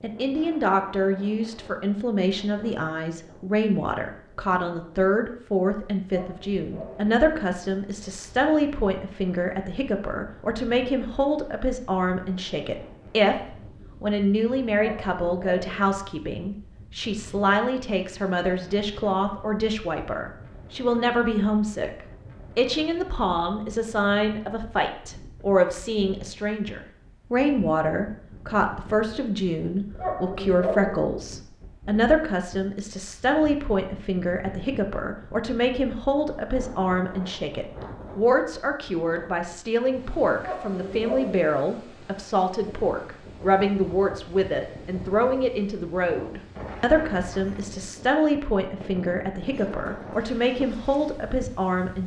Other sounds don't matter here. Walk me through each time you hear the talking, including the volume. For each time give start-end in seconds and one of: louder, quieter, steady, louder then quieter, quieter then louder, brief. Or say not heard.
0.0-52.0 steady.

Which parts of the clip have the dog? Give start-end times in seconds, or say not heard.
6.1-7.2, 14.8-15.9, 29.9-31.1, 40.4-41.5.